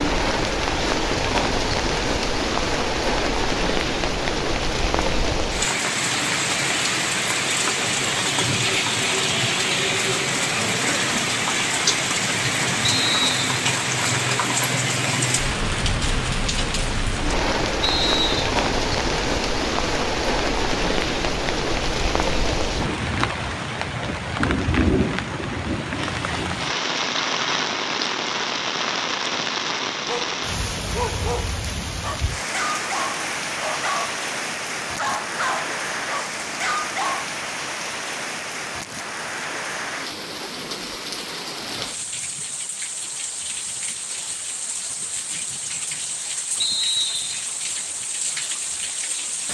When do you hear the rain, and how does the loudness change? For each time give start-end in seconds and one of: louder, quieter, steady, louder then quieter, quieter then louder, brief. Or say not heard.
0.0-49.4 quieter.